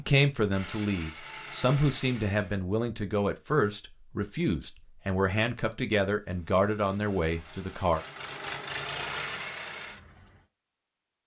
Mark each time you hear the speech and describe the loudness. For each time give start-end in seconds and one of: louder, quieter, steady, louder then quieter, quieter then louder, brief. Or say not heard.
0.0-8.1 steady.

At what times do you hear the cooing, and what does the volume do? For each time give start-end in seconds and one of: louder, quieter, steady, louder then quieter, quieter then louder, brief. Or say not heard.
not heard.